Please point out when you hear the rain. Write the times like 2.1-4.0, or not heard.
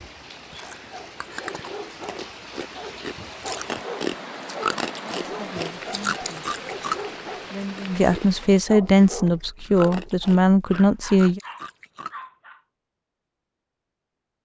0.0-8.7.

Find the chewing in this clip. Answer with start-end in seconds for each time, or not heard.
0.5-12.2.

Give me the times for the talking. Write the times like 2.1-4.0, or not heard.
5.3-6.5, 7.3-11.4.